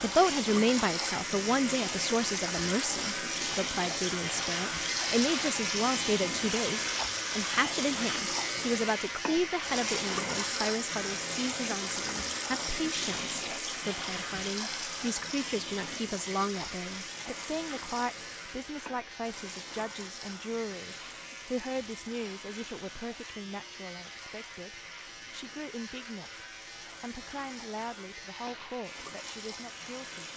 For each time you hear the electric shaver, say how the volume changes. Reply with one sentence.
The electric shaver can be heard from 0.0 to 30.3 s, getting quieter.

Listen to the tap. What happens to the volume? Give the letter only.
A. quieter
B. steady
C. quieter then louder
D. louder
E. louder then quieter
A.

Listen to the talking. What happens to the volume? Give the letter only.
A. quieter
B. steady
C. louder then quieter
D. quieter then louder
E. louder
A.